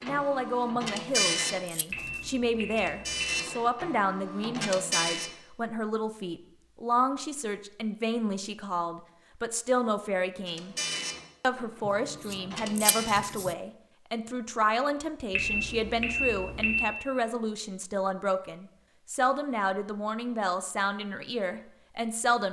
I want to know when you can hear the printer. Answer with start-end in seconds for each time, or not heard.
0.0-5.3, 10.4-13.2.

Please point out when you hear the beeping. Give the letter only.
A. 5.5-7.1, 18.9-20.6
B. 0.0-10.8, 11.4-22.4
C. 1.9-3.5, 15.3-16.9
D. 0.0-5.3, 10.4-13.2
C.